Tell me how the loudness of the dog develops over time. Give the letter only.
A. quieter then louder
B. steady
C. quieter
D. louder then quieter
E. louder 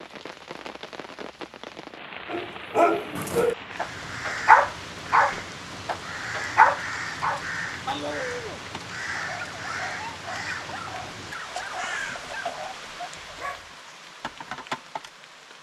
C.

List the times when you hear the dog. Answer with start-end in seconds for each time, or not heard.
2.3-13.7.